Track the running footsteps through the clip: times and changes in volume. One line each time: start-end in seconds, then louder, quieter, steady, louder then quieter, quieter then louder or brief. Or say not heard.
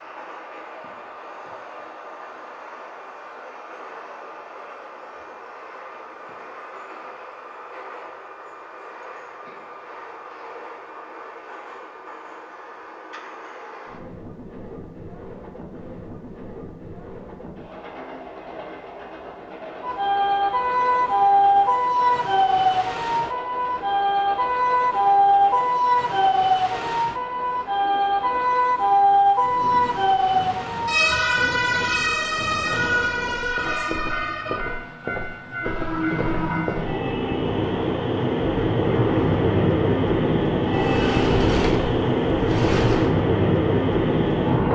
not heard.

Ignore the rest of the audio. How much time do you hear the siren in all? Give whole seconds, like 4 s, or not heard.
15 s.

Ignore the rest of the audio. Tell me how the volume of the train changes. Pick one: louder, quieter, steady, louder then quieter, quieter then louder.
louder.